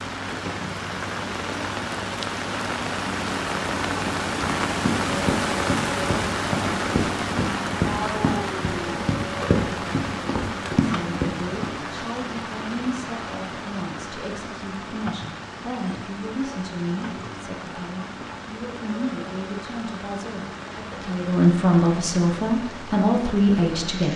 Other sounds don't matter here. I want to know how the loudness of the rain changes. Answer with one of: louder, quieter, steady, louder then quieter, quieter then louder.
quieter.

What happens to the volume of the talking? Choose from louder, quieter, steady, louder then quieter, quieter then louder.
louder.